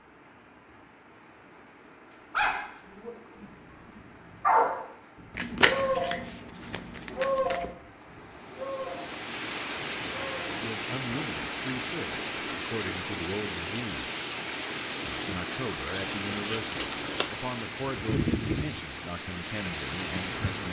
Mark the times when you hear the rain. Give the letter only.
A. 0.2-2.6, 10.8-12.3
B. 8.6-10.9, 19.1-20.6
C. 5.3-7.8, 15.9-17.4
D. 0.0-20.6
D.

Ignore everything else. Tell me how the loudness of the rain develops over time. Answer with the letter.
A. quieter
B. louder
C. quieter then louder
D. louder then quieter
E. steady
B.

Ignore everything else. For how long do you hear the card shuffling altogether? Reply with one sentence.
You can hear the card shuffling for 4 seconds altogether.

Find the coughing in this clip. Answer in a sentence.
The coughing can't be heard in this clip.